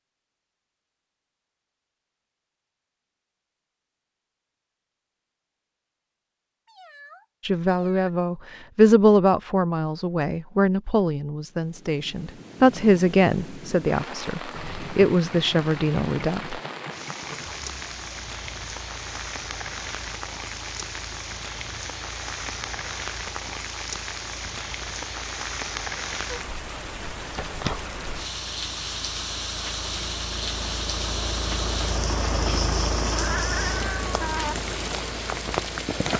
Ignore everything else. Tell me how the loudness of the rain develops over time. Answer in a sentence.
The loudness of the rain goes up.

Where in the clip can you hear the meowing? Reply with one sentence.
You can hear the meowing from 6.7 to 8.1 s, from 14.5 to 14.9 s and from 33.0 to 34.5 s.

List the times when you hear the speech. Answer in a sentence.
The speech can be heard from 7.5 to 16.6 s.